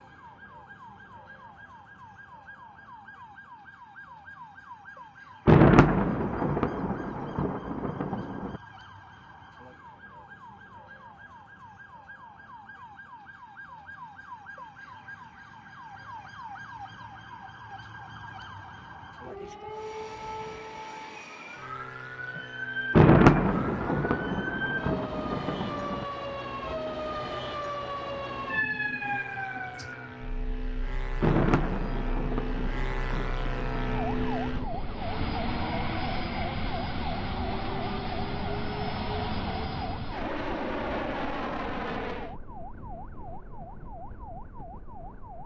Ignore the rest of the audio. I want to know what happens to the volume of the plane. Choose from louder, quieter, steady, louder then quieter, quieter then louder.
louder.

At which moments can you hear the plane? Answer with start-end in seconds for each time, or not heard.
19.6-42.4.